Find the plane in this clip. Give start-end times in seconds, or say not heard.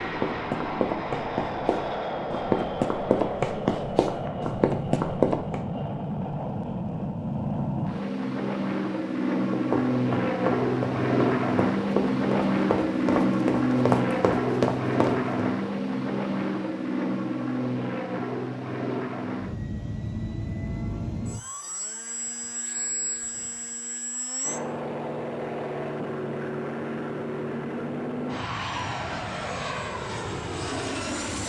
0.0-31.4.